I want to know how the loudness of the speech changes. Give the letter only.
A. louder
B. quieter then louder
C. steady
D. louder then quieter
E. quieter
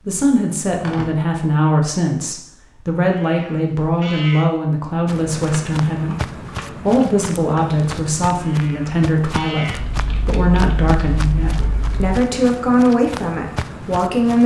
C.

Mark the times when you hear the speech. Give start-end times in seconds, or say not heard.
0.1-14.4.